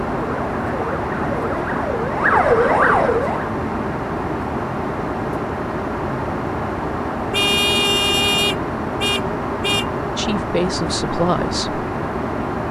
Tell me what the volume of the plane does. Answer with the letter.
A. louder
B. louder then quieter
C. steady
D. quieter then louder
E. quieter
C.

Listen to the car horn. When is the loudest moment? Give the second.
8 s.